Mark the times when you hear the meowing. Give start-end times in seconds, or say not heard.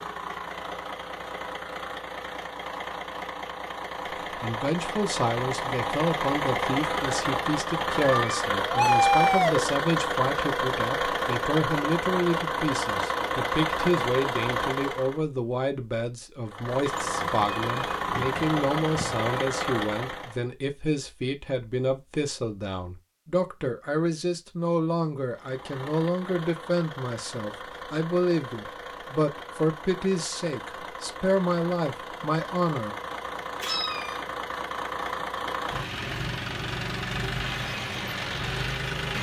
8.0-9.7, 16.9-19.2, 33.6-34.2.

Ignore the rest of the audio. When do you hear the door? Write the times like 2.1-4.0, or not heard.
not heard.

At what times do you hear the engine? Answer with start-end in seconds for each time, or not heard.
0.0-15.2, 16.4-20.4, 25.3-39.1.